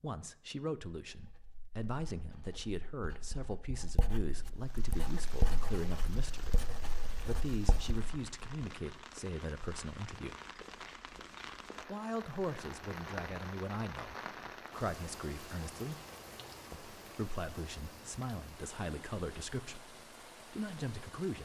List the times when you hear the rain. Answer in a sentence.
You can hear the rain from 4.5 to 21.4 s.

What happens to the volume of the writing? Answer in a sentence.
The volume of the writing goes up, then down.